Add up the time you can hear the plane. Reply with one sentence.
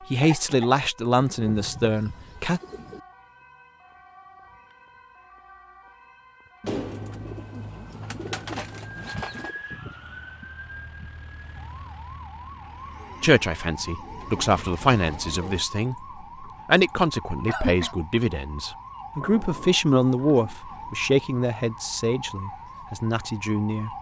You can hear the plane for 3 seconds altogether.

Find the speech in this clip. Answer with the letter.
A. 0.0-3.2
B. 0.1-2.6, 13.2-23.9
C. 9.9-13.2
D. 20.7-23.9
B.